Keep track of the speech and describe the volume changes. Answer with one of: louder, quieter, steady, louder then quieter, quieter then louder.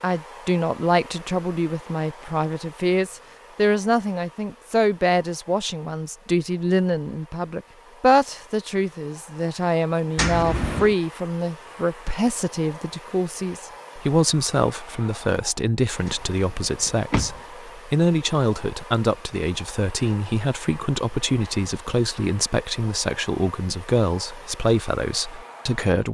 steady.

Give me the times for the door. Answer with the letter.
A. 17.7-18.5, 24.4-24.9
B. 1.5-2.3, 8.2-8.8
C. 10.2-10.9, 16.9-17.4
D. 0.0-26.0
C.